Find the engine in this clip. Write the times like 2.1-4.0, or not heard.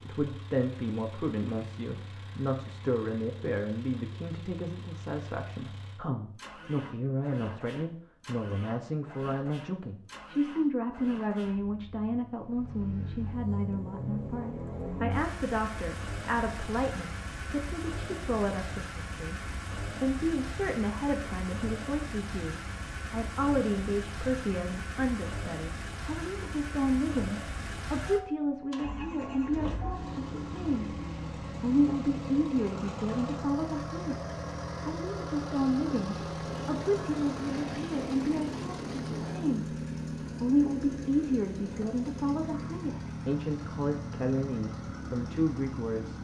0.0-46.1.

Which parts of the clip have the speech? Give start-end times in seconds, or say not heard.
0.1-19.4, 20.0-39.8, 40.4-46.1.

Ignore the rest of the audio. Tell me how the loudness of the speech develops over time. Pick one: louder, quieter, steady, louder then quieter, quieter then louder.
steady.